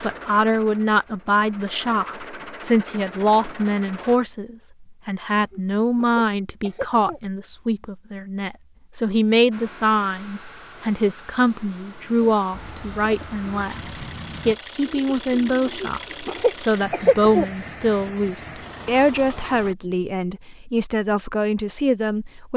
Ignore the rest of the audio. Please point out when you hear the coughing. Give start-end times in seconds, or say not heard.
5.3-7.2, 15.7-17.5.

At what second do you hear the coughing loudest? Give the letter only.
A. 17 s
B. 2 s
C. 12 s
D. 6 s
A.